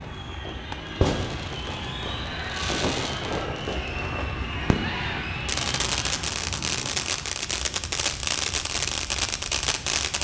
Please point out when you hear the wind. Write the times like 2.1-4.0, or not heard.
0.0-10.1.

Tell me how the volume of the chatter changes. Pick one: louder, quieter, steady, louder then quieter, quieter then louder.
louder.